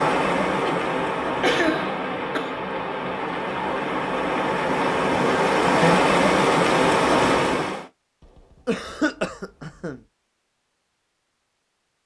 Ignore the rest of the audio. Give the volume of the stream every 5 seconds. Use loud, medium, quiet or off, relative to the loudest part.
medium, loud, off.